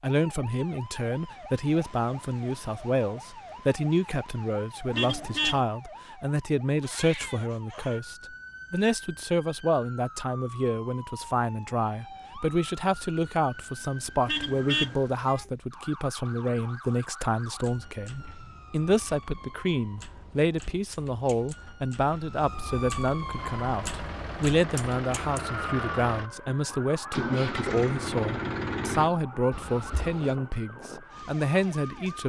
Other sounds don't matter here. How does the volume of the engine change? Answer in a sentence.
The loudness of the engine goes up.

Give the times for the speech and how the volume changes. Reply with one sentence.
The speech can be heard from 0.0 to 32.2 s, at a steady volume.